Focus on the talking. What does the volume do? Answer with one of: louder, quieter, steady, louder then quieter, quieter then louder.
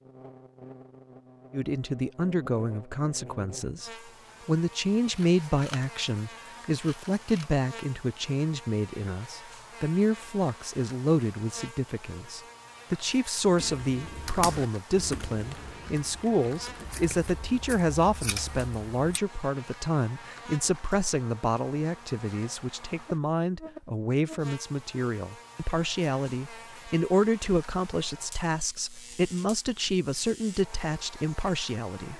steady.